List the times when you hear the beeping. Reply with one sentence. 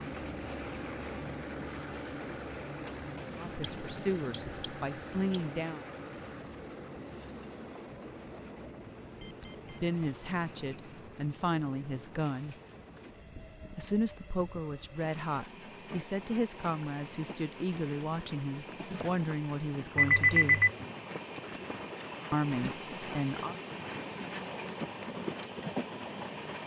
You can hear the beeping from 3.6 to 5.4 s, from 9.2 to 9.8 s and from 19.9 to 20.7 s.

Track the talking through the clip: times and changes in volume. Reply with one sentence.
You can hear the talking briefly from 3.4 to 5.8 s; briefly from 9.8 to 12.6 s; from 13.8 to 20.6 s, at a steady volume; and briefly from 22.3 to 23.6 s.